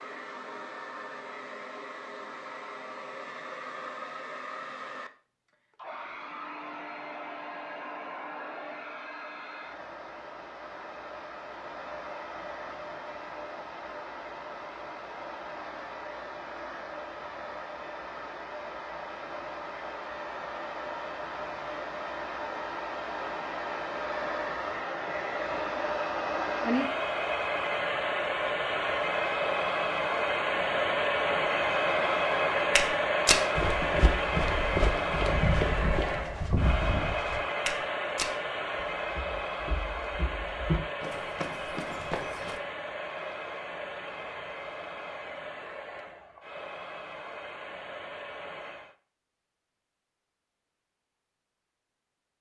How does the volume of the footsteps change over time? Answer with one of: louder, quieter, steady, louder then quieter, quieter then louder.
quieter.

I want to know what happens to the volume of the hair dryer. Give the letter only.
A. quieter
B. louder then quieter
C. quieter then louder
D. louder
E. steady
B.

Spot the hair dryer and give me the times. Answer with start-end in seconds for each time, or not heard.
0.0-49.0.